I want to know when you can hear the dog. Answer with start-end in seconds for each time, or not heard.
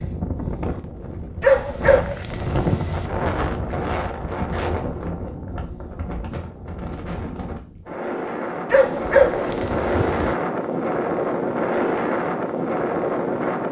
1.4-3.1, 8.7-10.3.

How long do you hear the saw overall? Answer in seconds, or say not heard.
not heard.